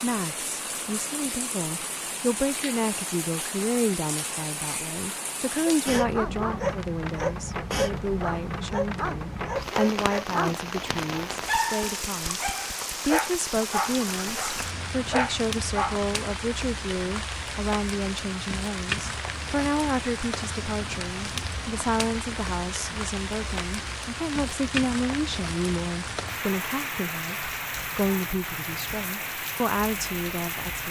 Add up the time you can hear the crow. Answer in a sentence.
You can't hear the crow here.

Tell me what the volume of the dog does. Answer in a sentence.
The volume of the dog stays about the same.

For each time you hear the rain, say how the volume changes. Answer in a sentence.
The rain can be heard from 0.0 to 30.8 s, at a steady volume.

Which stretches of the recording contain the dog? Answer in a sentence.
The dog can be heard from 5.8 to 10.6 s and from 11.2 to 16.0 s.